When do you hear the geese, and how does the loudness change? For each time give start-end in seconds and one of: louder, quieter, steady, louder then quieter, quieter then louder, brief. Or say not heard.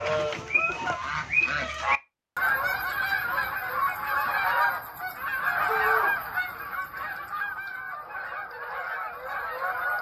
0.0-9.9 quieter.